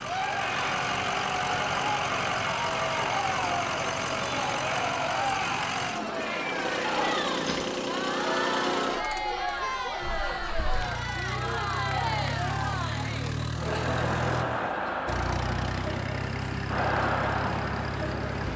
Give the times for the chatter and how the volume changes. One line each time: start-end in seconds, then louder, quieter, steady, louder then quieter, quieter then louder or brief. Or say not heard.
0.0-18.5 steady.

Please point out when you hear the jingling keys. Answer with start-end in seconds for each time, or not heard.
7.2-7.9.